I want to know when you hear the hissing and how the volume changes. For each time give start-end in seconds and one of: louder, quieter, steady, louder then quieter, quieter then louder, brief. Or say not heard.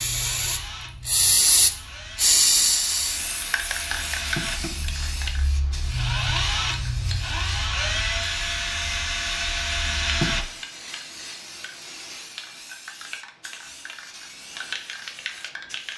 0.0-15.9 quieter.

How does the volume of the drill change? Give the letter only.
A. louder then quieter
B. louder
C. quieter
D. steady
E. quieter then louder
B.